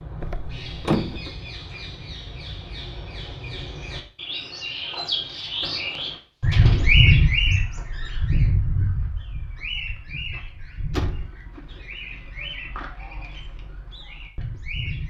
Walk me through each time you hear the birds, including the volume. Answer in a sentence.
The birds can be heard from 0.0 to 15.0 s, getting louder then quieter.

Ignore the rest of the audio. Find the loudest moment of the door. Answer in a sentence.
The loudest moment of the door is at 1 second.